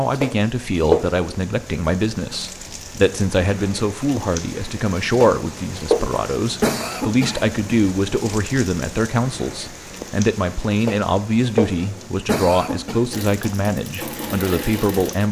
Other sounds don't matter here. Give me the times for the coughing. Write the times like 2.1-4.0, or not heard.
0.1-1.4, 5.1-7.8, 10.8-13.0.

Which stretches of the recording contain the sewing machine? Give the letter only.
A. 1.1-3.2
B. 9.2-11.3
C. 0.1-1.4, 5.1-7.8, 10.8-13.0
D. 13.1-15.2
D.